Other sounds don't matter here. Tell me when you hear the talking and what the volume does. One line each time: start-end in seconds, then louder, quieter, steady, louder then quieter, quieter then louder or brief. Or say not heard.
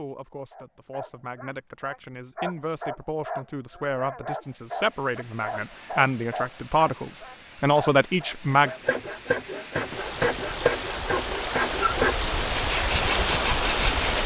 0.0-8.7 louder.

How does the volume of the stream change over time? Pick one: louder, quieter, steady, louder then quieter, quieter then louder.
louder.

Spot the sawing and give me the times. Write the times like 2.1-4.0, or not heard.
8.6-14.2.